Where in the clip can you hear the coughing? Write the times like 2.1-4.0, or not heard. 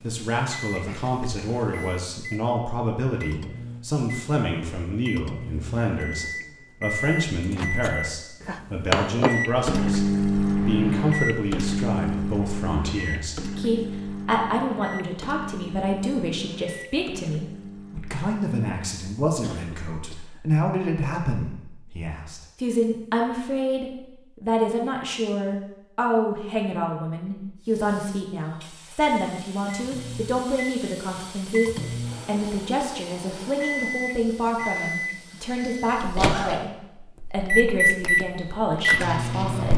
0.8-1.4, 19.4-20.3, 34.5-36.6.